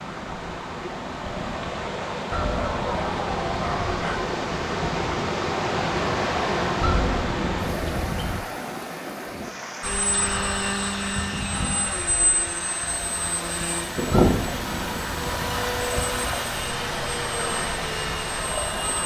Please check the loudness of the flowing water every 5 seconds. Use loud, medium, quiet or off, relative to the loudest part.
loud, loud, medium, loud.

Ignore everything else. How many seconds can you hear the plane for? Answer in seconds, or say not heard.
9 s.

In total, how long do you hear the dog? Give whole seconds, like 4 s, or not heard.
2 s.